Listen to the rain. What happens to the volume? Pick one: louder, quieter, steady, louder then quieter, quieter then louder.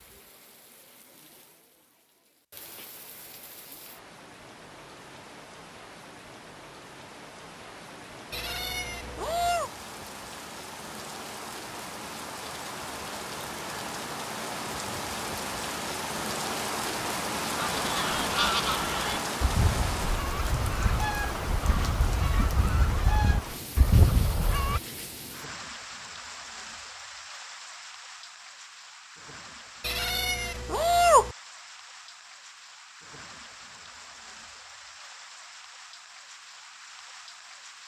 louder then quieter.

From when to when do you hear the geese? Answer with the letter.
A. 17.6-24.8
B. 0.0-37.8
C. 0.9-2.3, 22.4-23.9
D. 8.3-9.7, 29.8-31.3
A.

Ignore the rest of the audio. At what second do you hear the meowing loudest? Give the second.
31 s.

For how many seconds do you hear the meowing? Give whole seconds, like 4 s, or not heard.
3 s.